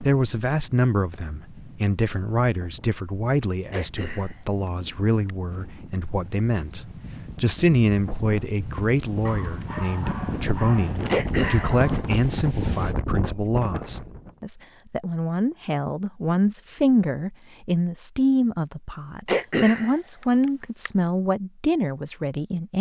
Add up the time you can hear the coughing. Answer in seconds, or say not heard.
3 s.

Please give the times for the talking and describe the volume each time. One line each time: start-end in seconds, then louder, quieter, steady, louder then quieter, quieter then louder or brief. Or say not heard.
0.0-22.7 steady.